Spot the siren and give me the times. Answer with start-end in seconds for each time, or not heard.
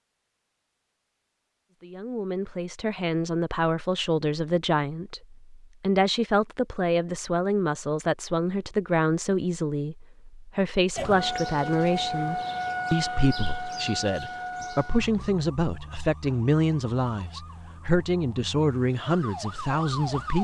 10.9-20.4.